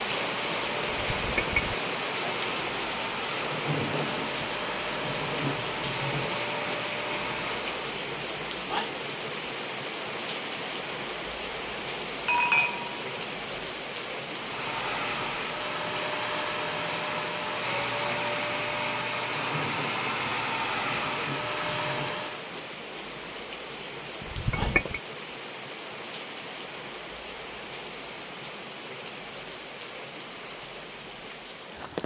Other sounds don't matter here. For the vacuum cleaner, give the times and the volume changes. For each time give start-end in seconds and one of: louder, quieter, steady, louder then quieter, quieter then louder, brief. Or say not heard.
0.0-7.8 steady
14.3-22.5 steady.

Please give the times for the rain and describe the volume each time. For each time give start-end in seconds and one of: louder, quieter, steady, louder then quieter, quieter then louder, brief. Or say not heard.
0.0-32.0 quieter.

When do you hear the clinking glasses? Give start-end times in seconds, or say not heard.
0.9-1.8, 12.2-13.6, 24.2-25.0.